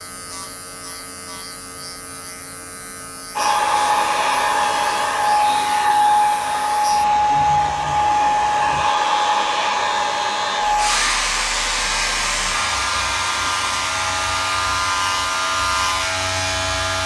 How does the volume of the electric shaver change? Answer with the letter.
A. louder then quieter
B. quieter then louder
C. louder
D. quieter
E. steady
C.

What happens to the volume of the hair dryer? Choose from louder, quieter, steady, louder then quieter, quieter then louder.
quieter.